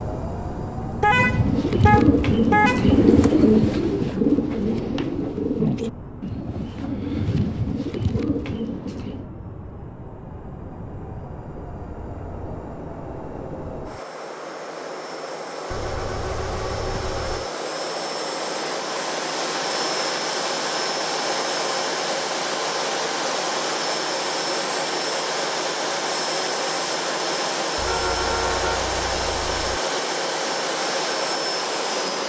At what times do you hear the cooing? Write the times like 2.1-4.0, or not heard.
1.1-9.2.